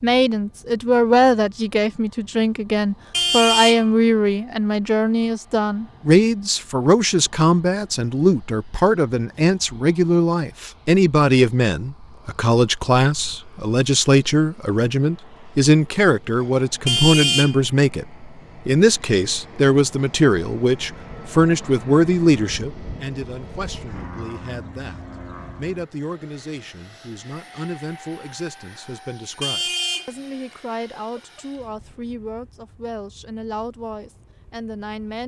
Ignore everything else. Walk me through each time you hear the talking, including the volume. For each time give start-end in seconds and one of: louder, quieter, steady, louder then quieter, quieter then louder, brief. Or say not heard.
0.0-35.2 quieter.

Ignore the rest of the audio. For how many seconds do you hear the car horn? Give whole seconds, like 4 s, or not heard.
3 s.